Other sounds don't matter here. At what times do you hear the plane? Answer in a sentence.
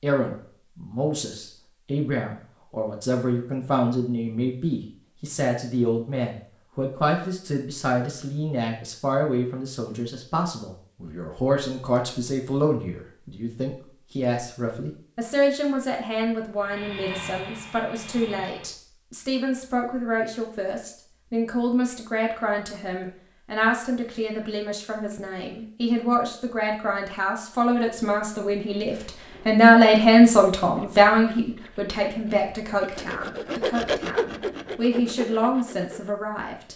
You can hear the plane from 16.6 to 18.8 s.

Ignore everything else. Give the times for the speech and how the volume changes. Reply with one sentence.
You can hear the speech from 0.0 to 36.7 s, getting louder.